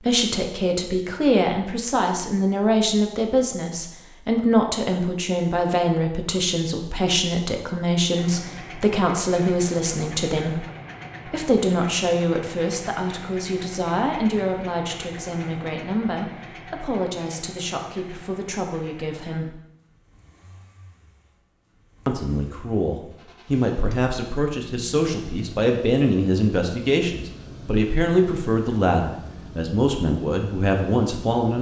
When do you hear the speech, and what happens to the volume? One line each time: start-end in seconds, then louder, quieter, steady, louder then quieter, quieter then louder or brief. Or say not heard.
0.0-10.7 steady
11.2-19.6 quieter
22.1-31.5 steady.